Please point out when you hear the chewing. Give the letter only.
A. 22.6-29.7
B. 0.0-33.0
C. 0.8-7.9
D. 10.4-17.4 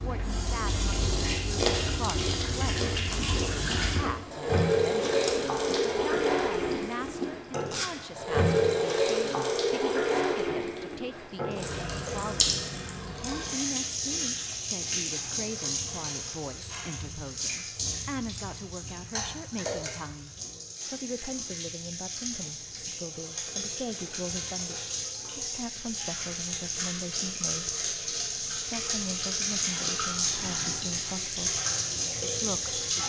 C.